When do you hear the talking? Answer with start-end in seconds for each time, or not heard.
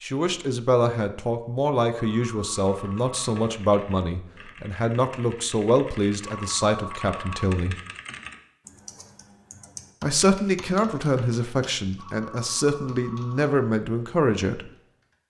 0.0-7.8, 10.0-14.7.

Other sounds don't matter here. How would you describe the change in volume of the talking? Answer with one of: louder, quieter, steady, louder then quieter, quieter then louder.
steady.